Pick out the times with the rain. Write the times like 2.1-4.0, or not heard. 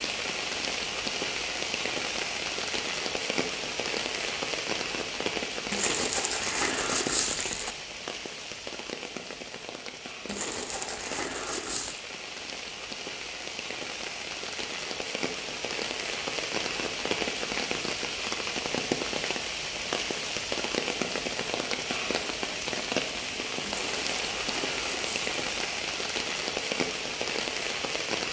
0.0-28.2.